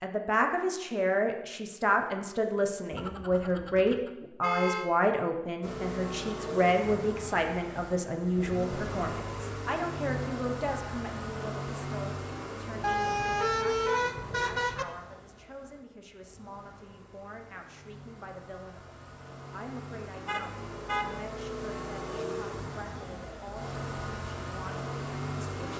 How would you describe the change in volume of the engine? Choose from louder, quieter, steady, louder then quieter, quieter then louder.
quieter then louder.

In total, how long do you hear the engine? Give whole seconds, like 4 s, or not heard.
20 s.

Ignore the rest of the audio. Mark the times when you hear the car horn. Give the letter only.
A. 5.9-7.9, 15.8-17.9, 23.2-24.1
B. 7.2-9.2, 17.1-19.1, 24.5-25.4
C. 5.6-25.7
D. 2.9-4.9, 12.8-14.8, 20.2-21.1
D.